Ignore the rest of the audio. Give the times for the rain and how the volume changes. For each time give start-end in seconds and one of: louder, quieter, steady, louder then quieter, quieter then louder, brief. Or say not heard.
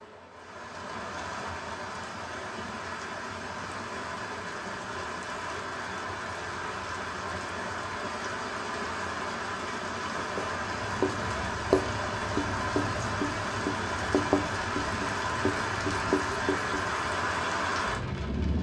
0.0-18.5 louder.